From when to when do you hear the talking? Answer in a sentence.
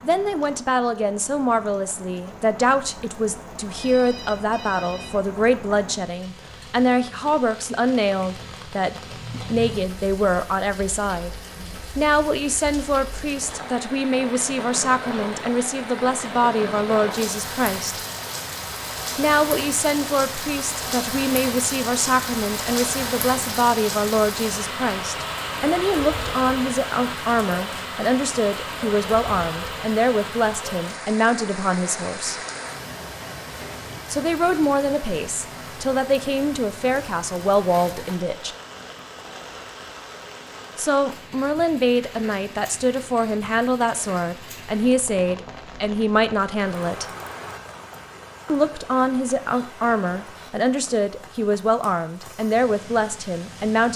The talking can be heard from 0.0 to 11.3 s, from 11.9 to 18.0 s, from 19.1 to 32.4 s, from 34.1 to 38.5 s, from 40.8 to 47.0 s and from 48.5 to 53.9 s.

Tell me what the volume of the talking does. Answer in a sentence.
The volume of the talking stays about the same.